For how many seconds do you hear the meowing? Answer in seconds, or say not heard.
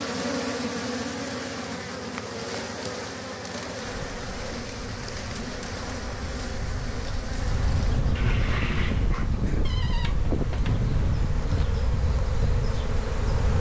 2 s.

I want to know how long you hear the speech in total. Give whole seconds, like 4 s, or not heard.
not heard.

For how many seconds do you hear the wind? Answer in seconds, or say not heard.
10 s.